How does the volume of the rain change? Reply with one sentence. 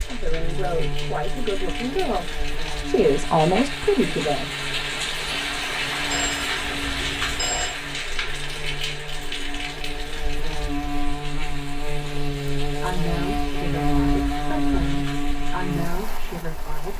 The volume of the rain goes up, then down.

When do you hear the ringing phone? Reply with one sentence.
The ringing phone can be heard from 6.1 to 7.8 s.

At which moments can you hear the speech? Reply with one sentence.
You can hear the speech from 0.0 to 4.5 s and from 12.7 to 16.9 s.